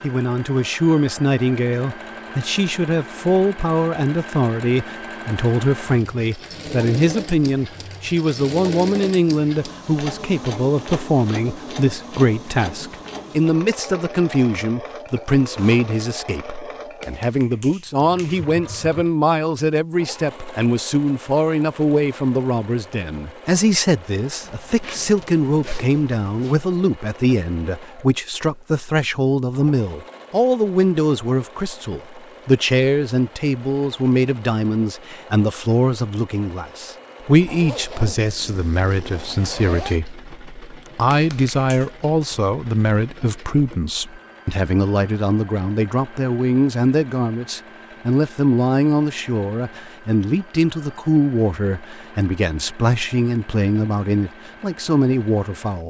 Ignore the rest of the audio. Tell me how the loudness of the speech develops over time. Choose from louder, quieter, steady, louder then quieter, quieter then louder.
steady.